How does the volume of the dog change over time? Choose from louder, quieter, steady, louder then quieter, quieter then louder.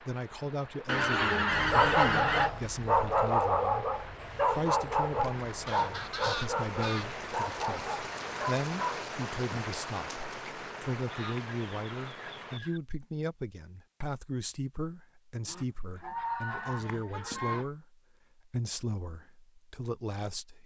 quieter.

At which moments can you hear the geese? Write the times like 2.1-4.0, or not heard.
0.8-2.5, 5.7-7.7, 11.1-12.8, 15.4-17.6.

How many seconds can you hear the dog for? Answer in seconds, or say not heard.
8 s.